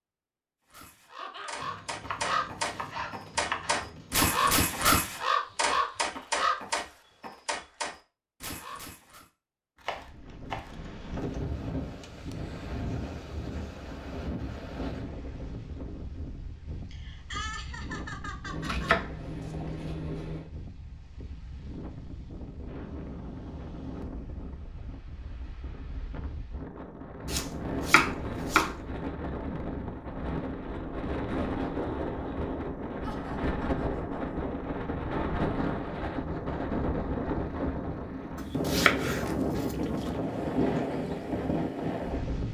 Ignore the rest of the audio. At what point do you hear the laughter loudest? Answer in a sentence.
The loudest moment of the laughter is at 17 seconds.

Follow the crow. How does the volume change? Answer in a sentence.
The volume of the crow goes up, then down.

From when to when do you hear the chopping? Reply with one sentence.
You can hear the chopping from 1.6 to 4.5 s, from 9.8 to 11.2 s, from 18.5 to 20.5 s, from 27.2 to 28.8 s and from 38.4 to 40.2 s.